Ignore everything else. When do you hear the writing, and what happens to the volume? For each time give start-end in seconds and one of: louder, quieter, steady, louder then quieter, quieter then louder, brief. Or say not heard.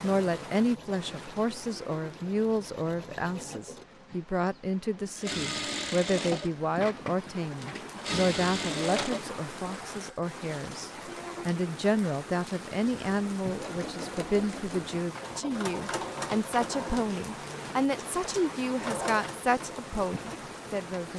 not heard.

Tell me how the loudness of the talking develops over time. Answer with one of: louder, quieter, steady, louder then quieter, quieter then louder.
steady.